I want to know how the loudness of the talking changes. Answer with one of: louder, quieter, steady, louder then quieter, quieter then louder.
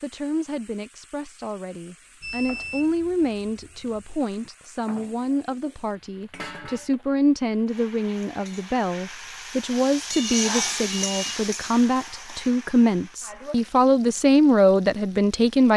louder.